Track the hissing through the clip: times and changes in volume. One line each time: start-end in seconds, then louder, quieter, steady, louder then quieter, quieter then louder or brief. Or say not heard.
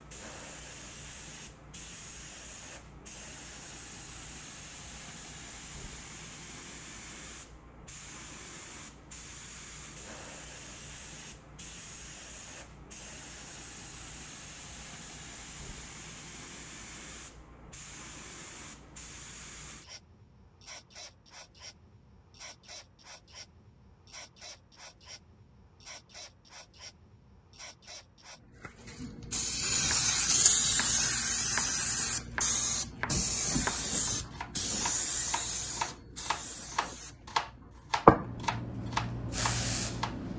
0.0-40.3 louder.